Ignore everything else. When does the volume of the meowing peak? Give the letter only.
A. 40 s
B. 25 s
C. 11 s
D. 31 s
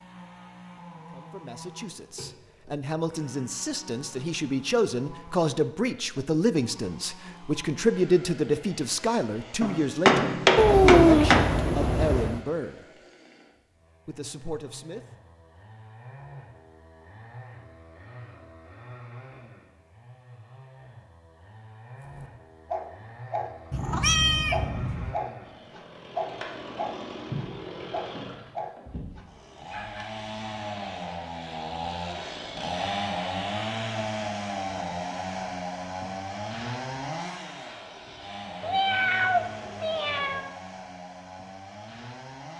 C.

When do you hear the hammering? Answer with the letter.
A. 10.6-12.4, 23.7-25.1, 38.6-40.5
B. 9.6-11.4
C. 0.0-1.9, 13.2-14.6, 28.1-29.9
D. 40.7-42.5
B.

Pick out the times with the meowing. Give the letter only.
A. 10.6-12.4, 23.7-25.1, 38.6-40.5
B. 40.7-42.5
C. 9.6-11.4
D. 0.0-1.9
A.